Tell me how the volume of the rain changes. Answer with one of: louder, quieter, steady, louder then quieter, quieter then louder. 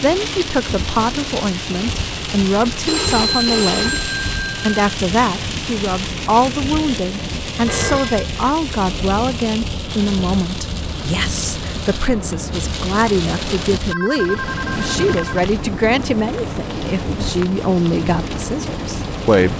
steady.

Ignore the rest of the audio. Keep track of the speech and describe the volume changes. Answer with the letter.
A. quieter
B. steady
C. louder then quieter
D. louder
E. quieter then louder
B.